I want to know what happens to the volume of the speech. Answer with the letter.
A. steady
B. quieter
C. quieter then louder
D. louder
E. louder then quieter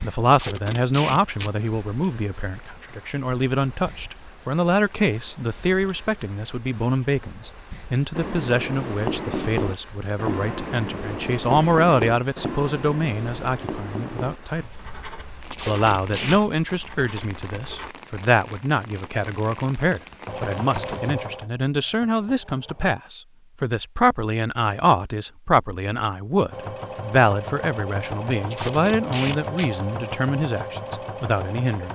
A.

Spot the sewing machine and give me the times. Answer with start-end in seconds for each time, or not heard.
20.2-22.9, 26.5-31.9.